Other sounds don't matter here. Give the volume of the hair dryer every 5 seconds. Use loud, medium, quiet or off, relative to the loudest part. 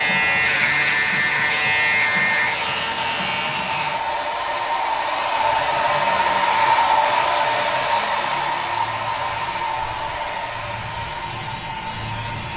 medium, loud, medium.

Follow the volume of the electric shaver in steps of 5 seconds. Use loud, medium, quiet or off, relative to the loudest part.
loud, medium, loud.